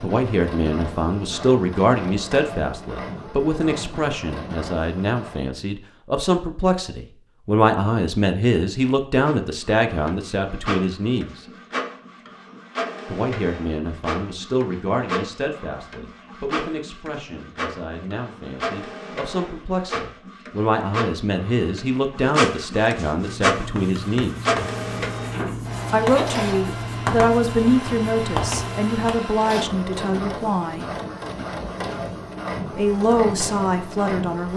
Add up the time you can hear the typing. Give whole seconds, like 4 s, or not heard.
not heard.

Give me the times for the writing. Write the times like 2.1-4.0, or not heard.
23.2-29.1.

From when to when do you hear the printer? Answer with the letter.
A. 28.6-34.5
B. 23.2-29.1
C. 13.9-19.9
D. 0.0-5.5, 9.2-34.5
D.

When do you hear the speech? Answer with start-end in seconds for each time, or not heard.
0.0-11.3, 13.1-24.4, 25.9-30.9, 32.8-34.5.